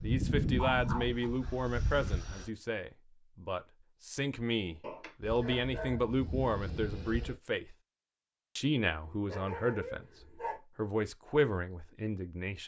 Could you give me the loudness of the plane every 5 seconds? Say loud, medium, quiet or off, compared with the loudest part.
loud, medium, off.